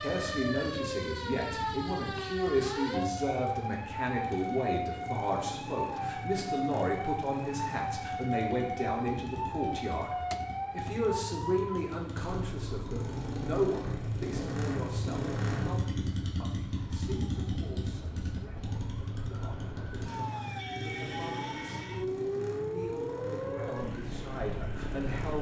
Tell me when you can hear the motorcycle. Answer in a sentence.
You can hear the motorcycle from 0.0 to 25.3 s.